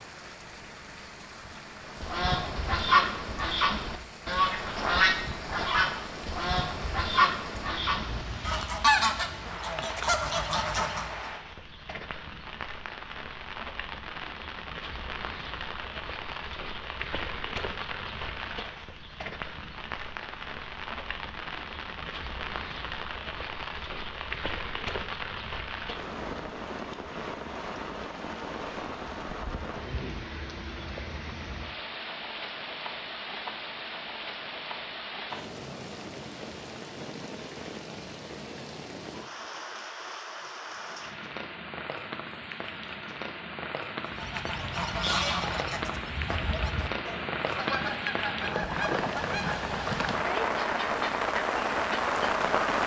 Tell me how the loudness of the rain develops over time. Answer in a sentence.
The volume of the rain goes up.